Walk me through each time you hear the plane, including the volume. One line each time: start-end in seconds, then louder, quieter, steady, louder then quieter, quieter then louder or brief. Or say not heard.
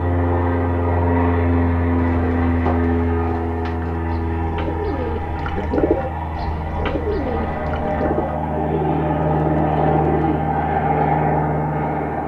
0.0-12.2 quieter then louder.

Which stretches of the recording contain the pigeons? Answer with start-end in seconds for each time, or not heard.
1.9-10.4.